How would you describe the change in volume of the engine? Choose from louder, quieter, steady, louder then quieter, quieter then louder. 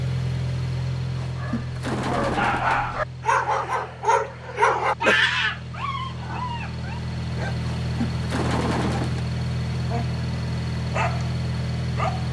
quieter then louder.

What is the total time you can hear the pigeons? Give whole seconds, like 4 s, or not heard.
3 s.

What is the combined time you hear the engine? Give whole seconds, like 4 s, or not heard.
12 s.